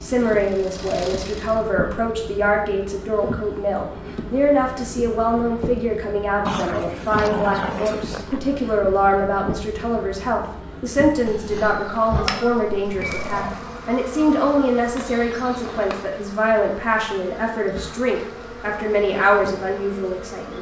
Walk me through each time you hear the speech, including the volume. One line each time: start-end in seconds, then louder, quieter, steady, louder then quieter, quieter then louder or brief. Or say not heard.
0.0-20.5 steady.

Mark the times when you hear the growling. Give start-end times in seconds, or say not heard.
6.5-8.4, 11.2-13.6.